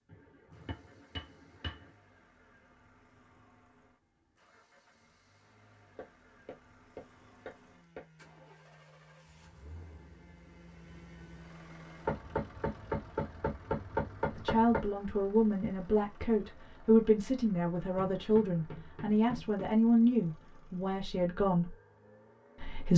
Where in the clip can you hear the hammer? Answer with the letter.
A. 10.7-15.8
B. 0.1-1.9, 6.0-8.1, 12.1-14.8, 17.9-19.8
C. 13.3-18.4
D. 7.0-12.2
B.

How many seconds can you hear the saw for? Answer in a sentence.
The saw can be heard for 5 seconds in total.